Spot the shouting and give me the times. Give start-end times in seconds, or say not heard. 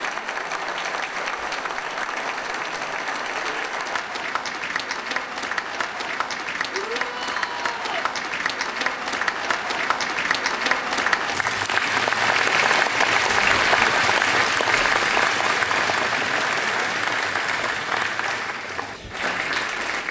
6.7-8.1.